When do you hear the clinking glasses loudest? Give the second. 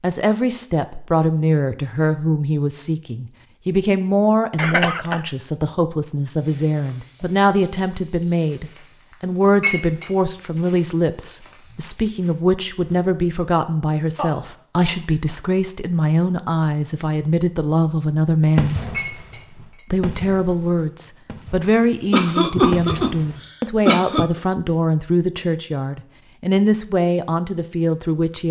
10 s.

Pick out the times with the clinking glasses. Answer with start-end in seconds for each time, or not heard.
9.6-10.1, 18.9-19.9.